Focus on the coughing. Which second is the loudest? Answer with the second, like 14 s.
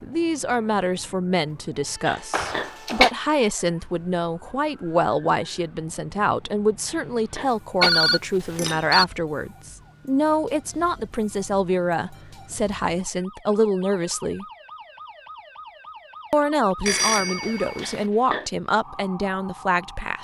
3 s.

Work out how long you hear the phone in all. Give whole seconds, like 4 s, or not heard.
3 s.